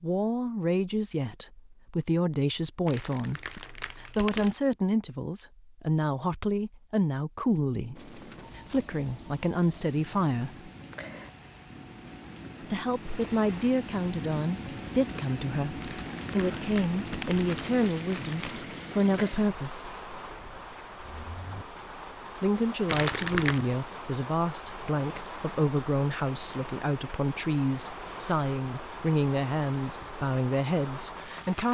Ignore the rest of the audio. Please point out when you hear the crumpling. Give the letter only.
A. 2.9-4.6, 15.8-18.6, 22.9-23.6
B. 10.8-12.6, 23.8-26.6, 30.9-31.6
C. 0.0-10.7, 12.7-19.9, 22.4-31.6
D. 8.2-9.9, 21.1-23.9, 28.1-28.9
A.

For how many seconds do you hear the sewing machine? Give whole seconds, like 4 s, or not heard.
not heard.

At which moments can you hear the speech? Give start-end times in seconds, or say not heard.
0.0-10.7, 12.7-19.9, 22.4-31.6.